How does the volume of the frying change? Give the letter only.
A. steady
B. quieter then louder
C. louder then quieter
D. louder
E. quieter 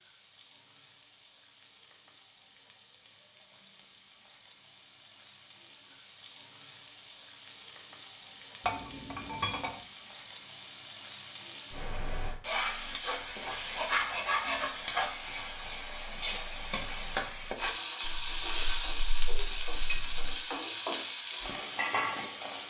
D.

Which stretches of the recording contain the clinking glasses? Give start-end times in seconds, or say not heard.
8.7-9.8, 18.0-20.4.